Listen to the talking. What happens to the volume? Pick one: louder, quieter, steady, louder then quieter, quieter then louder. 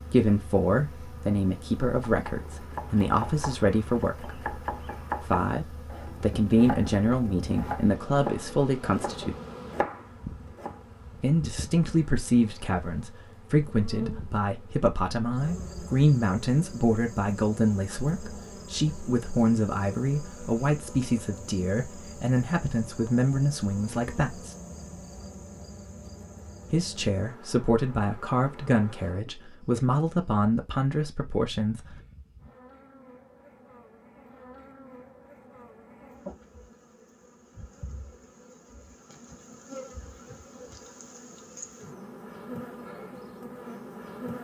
steady.